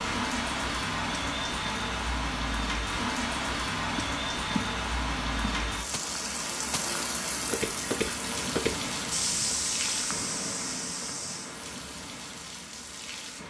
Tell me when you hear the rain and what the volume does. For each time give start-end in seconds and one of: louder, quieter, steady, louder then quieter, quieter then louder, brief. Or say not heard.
0.0-13.4 quieter.